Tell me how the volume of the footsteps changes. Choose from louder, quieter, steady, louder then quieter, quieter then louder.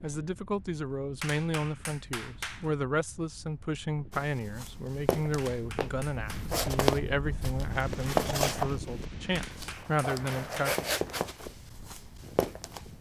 louder then quieter.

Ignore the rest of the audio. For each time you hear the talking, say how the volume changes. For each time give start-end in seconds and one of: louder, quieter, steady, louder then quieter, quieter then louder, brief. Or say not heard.
0.0-10.8 steady.